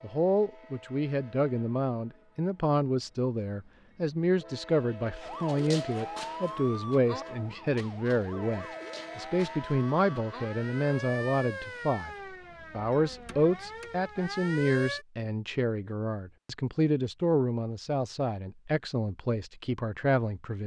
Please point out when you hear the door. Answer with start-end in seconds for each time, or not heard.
not heard.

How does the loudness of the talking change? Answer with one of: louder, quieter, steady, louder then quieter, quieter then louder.
steady.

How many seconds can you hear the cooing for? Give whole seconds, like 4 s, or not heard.
not heard.